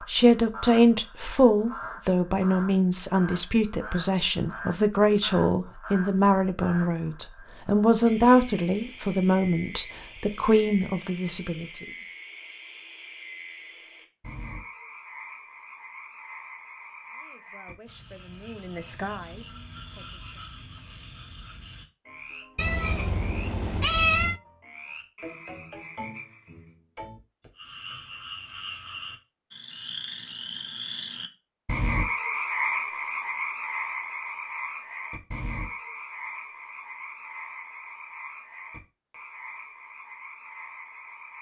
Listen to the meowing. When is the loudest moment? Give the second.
24 s.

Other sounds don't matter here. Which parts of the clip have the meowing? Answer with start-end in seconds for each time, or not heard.
22.6-24.4.